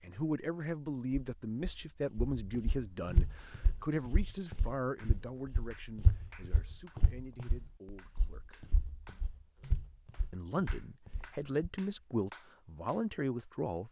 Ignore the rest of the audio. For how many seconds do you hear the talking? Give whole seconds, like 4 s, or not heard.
12 s.